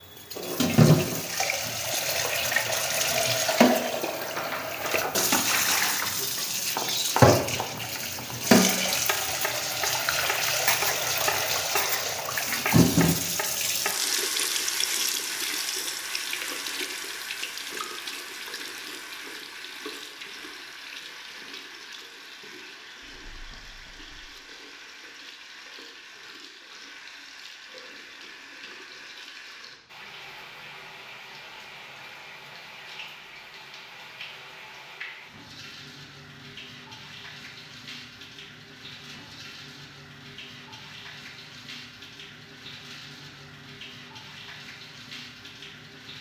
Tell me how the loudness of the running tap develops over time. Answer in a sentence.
The volume of the running tap goes down.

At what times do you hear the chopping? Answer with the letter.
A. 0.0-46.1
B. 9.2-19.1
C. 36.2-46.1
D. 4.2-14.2
D.